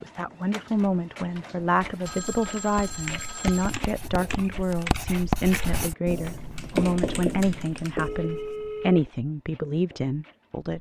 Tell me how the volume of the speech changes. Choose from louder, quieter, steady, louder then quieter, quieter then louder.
steady.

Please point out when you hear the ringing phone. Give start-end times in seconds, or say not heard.
2.0-3.8, 8.0-9.1.